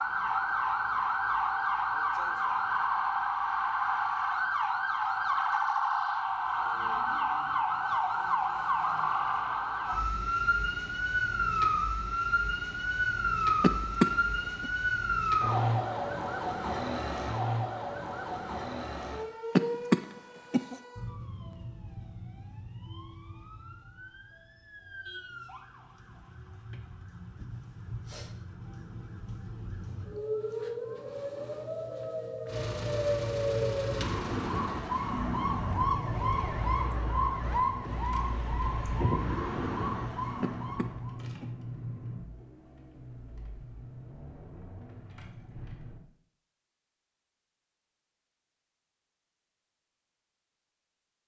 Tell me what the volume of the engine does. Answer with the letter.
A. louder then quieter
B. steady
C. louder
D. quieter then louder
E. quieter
E.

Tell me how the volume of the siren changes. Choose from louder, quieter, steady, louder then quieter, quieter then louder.
quieter then louder.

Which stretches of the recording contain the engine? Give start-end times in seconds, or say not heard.
32.5-46.0.